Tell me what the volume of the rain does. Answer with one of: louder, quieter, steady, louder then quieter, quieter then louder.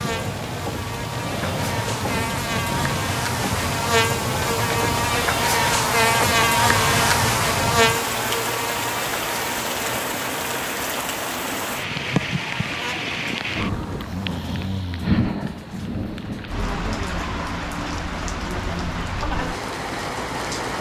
steady.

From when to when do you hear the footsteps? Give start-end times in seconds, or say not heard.
not heard.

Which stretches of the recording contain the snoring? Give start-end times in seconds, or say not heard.
13.9-16.6.